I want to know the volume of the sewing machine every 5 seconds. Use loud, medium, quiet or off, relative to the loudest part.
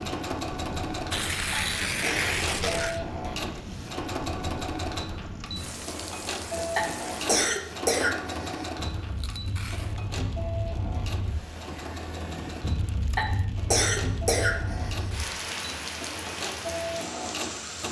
loud, loud, medium, loud.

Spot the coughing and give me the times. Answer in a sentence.
You can hear the coughing from 1.5 to 3.1 s, from 6.8 to 8.7 s and from 13.2 to 15.1 s.